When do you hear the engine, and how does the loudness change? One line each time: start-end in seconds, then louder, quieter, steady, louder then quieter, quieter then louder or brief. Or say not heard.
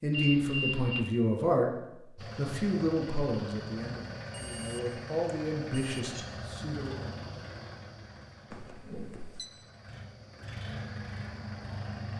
2.1-12.1 quieter then louder.